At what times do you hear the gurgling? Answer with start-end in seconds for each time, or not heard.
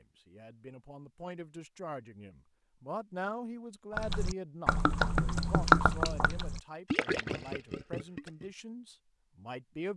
4.0-8.4.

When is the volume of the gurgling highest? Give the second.
6 s.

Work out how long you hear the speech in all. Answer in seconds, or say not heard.
10 s.